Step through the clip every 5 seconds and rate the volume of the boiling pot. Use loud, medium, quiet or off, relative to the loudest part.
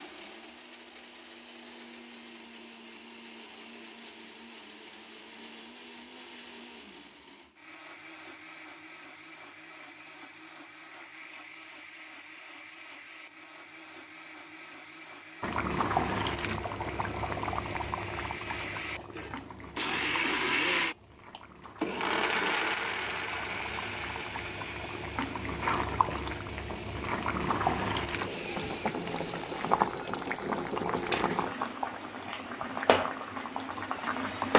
off, off, off, loud, quiet, loud, loud.